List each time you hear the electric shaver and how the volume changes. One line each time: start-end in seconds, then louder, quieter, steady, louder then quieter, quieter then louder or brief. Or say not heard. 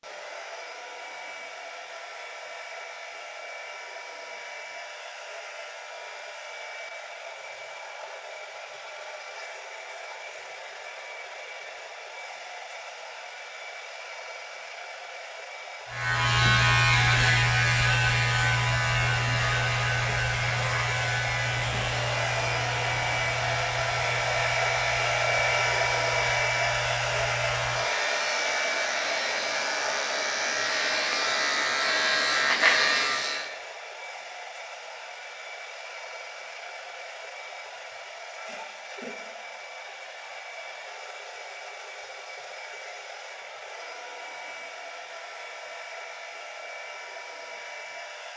15.9-33.5 quieter then louder.